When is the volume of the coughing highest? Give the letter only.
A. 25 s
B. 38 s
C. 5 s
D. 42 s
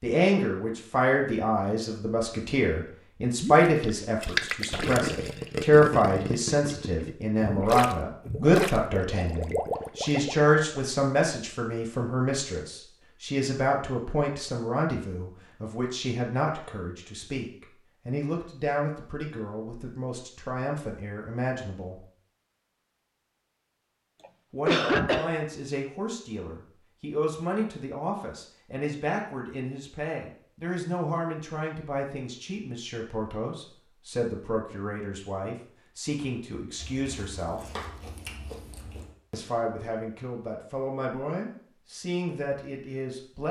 A.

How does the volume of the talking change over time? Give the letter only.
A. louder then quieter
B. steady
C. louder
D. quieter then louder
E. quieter
E.